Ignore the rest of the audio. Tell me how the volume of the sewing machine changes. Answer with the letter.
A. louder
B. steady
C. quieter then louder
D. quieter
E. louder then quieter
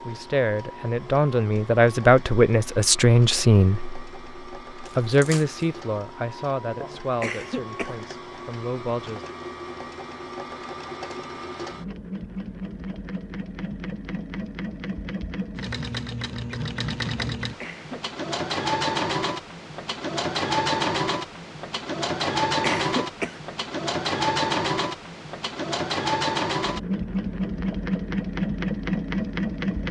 A.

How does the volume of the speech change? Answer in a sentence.
The volume of the speech goes up, then down.